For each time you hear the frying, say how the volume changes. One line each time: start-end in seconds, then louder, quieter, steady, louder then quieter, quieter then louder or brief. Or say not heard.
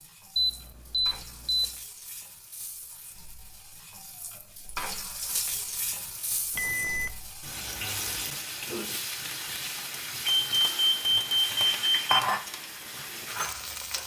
0.0-14.0 louder.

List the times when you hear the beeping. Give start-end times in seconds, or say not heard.
0.3-1.8, 6.5-7.1, 10.2-12.2.